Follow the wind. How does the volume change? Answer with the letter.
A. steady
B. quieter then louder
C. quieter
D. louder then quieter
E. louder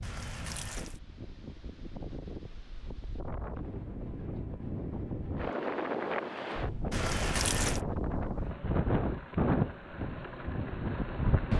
E.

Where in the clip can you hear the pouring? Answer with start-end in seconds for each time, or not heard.
0.0-1.0, 6.9-7.8.